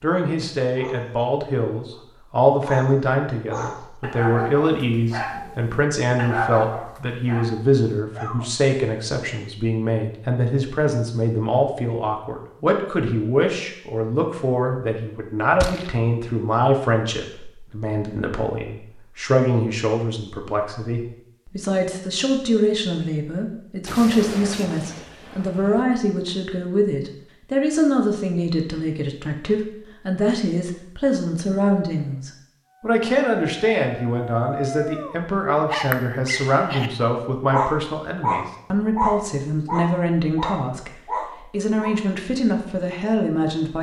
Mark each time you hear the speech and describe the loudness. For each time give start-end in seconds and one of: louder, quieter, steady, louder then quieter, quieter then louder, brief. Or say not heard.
0.0-43.7 steady.